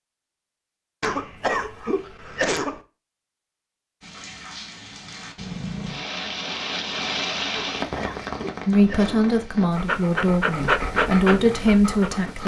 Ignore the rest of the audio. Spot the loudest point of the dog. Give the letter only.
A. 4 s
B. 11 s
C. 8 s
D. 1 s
B.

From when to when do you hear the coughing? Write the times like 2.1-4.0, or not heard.
1.0-2.8, 7.5-9.3.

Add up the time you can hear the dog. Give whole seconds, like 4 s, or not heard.
3 s.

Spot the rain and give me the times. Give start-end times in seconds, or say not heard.
4.0-12.4.